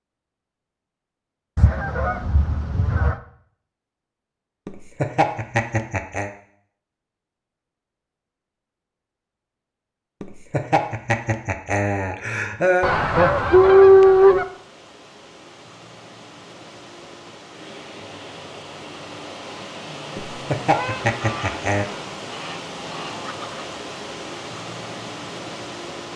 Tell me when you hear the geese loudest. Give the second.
14 s.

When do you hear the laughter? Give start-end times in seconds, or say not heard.
4.7-6.3, 10.2-12.9, 20.1-21.9.